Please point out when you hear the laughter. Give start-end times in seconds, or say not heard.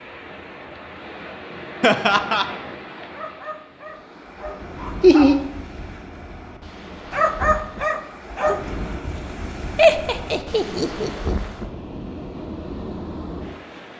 1.8-2.5, 5.0-5.4, 9.8-11.3.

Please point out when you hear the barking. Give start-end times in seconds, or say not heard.
3.1-5.5, 7.1-8.7.